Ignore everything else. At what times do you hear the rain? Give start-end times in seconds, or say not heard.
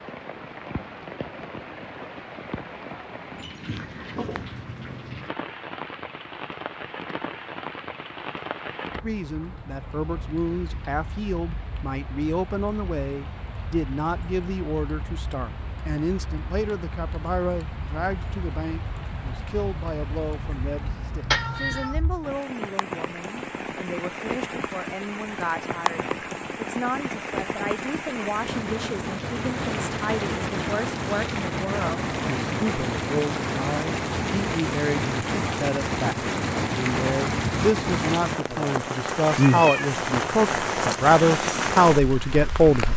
0.0-42.9.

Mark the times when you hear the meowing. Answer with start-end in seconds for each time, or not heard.
3.6-4.5, 21.3-21.9, 39.3-40.0.